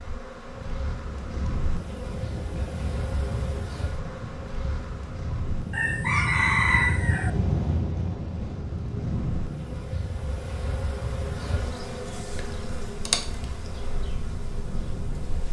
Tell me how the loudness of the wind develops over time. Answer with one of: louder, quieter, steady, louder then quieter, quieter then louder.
louder then quieter.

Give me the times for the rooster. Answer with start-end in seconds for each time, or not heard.
5.7-7.3.